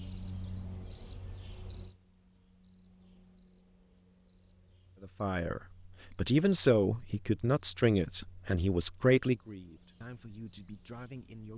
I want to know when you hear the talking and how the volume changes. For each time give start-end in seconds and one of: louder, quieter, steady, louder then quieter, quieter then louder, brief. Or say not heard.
5.0-11.5 quieter.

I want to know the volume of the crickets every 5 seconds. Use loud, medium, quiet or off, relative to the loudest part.
loud, quiet, quiet.